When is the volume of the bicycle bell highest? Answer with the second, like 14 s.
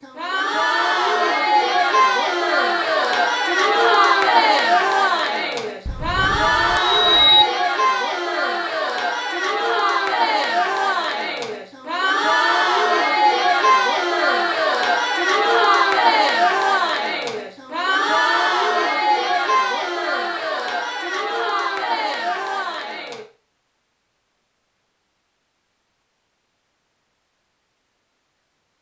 7 s.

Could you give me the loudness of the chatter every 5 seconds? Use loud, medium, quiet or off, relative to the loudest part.
loud, loud, loud, loud, medium, off.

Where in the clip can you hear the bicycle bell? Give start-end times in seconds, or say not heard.
5.8-7.5.